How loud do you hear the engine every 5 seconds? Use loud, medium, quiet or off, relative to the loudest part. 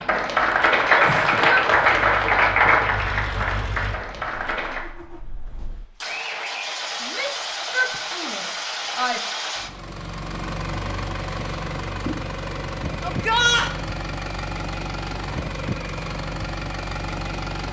medium, loud, loud, loud.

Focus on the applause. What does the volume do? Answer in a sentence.
The volume of the applause goes down.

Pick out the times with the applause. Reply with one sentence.
The applause can be heard from 0.0 to 4.8 s.